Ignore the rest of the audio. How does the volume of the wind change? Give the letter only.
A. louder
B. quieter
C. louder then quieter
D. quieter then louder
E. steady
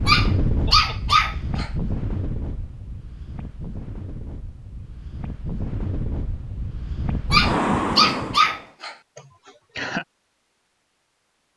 D.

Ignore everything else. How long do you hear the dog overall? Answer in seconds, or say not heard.
3 s.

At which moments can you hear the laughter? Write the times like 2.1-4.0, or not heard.
0.7-1.6, 9.2-10.1.